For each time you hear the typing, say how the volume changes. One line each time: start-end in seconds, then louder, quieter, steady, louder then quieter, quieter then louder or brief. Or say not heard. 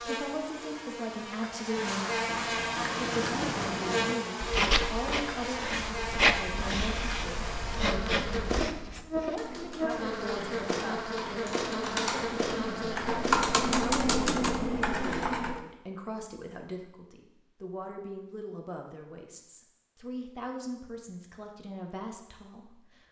9.2-15.6 louder.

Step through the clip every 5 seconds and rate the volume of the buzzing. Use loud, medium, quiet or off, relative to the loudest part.
loud, loud, loud, off, off.